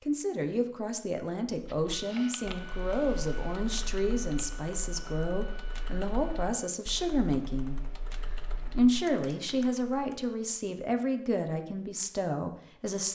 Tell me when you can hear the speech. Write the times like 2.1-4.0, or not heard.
0.0-7.8, 8.8-13.1.